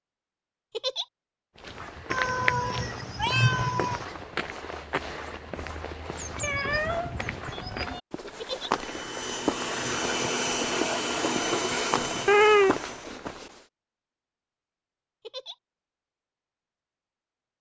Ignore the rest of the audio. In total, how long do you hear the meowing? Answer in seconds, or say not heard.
4 s.